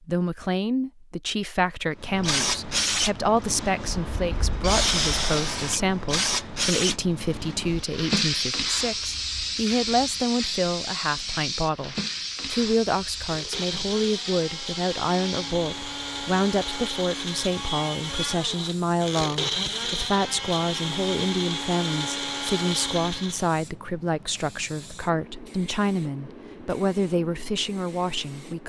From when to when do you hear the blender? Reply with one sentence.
The blender can be heard from 13.2 to 23.5 s.